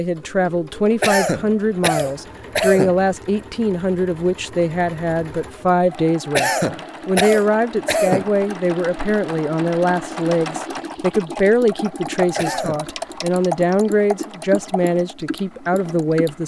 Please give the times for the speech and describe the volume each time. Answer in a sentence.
You can hear the speech from 0.0 to 16.4 s, at a steady volume.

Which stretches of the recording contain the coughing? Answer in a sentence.
The coughing can be heard from 1.0 to 3.0 s, from 6.3 to 8.3 s and from 12.3 to 12.8 s.